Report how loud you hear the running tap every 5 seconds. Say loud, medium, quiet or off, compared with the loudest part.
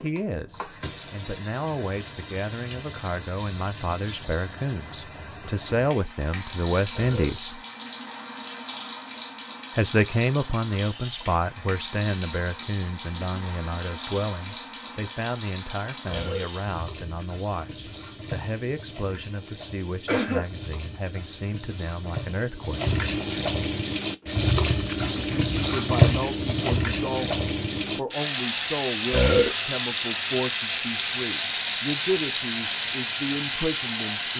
quiet, quiet, quiet, quiet, medium, loud, loud.